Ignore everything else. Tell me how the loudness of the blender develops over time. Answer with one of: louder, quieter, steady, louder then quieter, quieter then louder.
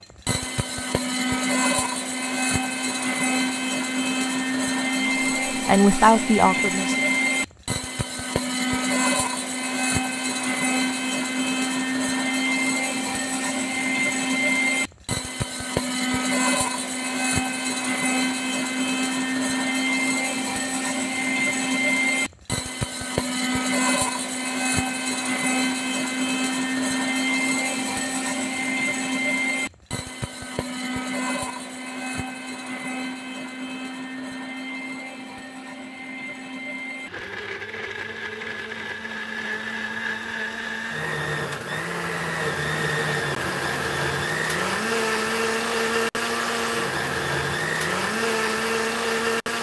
quieter then louder.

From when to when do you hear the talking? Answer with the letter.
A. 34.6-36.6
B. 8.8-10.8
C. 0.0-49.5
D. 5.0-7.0
D.